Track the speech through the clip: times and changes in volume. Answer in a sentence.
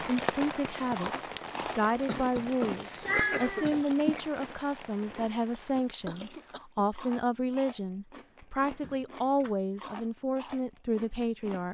The speech can be heard from 0.0 to 11.6 s, at a steady volume.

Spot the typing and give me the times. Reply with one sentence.
You can't hear the typing here.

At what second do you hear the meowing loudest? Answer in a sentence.
The volume of the meowing peaks at 3 seconds.